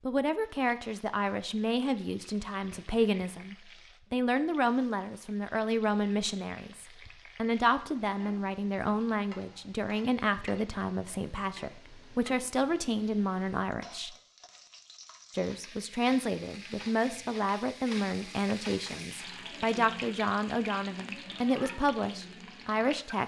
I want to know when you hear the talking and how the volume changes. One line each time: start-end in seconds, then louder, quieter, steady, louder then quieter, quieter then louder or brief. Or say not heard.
0.1-14.2 steady
15.3-23.2 steady.